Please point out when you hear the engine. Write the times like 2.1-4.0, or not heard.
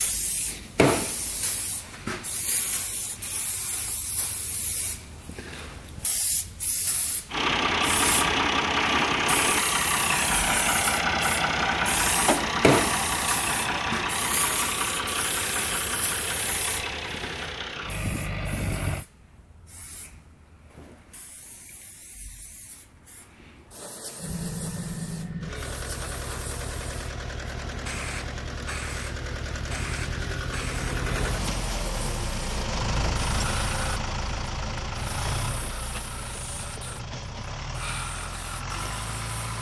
7.3-19.1, 24.1-39.5.